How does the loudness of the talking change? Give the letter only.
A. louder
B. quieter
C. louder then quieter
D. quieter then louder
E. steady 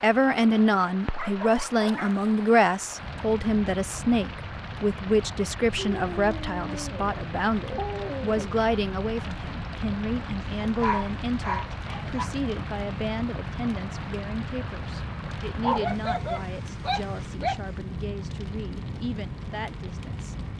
B.